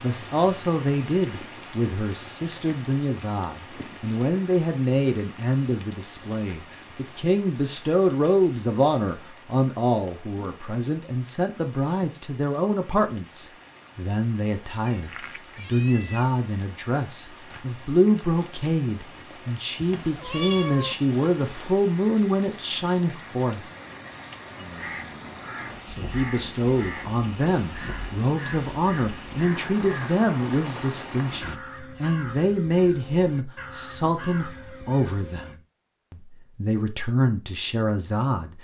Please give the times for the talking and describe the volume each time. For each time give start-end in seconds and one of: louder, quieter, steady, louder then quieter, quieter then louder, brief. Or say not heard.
0.0-23.6 steady
25.9-38.5 steady.